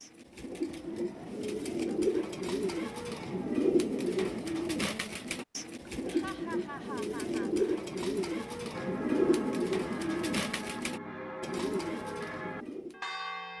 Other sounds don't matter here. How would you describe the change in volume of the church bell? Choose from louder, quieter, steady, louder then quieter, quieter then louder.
steady.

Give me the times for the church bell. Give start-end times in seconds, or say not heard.
8.7-13.5.